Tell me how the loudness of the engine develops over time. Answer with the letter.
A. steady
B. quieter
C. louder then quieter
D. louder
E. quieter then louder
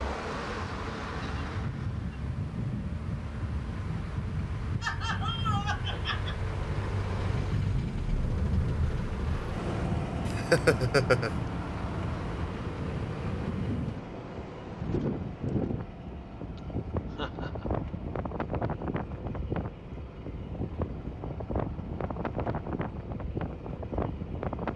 C.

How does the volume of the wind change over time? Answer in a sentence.
The volume of the wind stays about the same.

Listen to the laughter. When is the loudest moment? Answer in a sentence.
The volume of the laughter peaks at 11 seconds.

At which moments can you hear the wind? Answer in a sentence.
You can hear the wind from 0.0 to 24.7 s.